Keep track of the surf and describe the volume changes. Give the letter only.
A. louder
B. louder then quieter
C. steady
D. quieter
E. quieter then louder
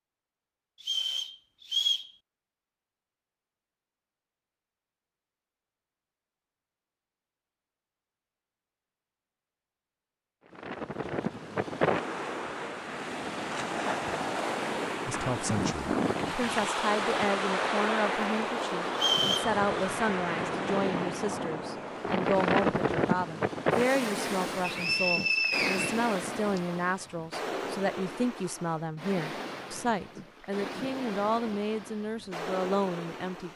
D.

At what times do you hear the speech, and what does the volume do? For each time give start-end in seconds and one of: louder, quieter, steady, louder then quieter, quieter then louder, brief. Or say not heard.
15.1-33.5 steady.